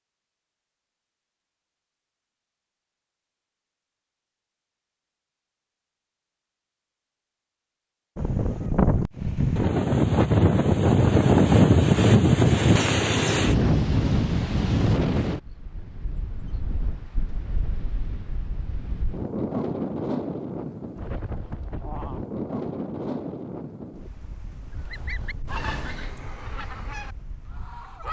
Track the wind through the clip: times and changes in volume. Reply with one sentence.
The wind can be heard from 8.2 to 28.0 s, getting quieter.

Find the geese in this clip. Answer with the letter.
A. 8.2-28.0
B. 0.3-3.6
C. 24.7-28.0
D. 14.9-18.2
C.